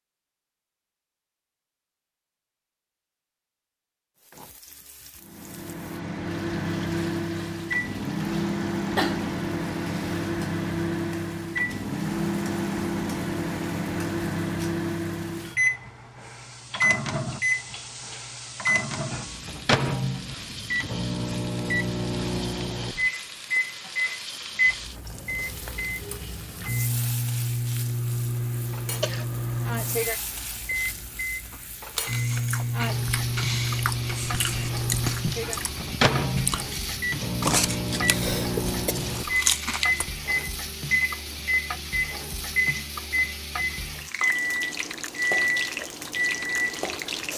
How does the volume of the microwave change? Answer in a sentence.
The volume of the microwave stays about the same.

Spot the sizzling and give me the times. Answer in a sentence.
The sizzling can be heard from 4.2 to 47.3 s.